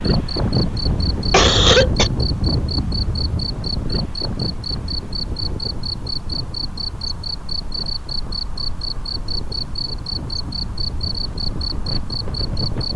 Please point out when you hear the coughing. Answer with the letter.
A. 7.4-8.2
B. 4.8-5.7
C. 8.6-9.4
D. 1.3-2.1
D.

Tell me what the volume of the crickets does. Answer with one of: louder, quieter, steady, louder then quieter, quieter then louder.
steady.